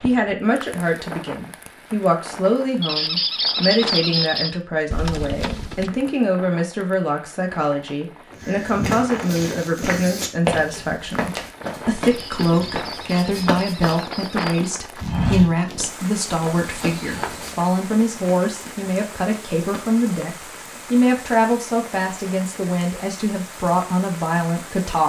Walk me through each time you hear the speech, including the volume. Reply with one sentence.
You can hear the speech from 0.0 to 25.0 s, at a steady volume.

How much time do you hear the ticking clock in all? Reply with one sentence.
The ticking clock can't be heard in this clip.